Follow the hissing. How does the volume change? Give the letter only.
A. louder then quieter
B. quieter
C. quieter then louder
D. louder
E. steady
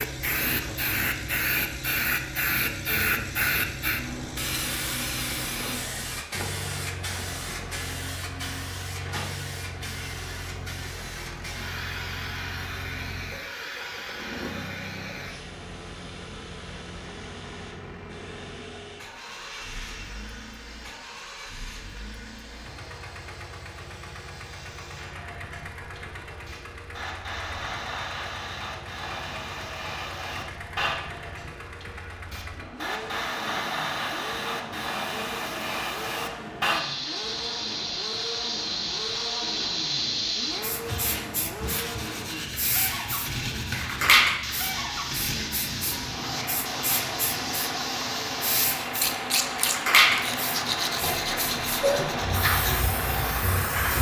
C.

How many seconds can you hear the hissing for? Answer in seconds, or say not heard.
54 s.